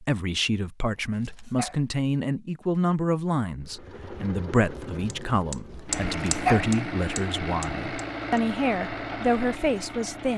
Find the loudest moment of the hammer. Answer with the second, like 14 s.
6 s.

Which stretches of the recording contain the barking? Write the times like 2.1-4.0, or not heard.
1.0-1.8, 5.7-6.7.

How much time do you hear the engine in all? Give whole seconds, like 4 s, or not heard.
7 s.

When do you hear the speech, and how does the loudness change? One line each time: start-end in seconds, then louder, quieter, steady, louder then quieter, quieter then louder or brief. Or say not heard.
0.0-10.3 steady.